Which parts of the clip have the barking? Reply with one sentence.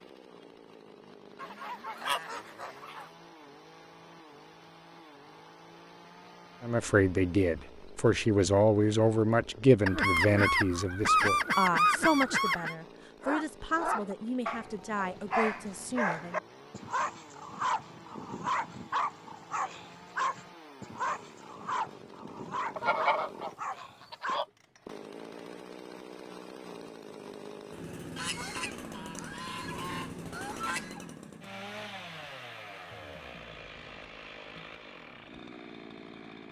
The barking can be heard from 13.2 to 24.4 s.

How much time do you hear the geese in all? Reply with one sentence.
The geese can be heard for 9 seconds in total.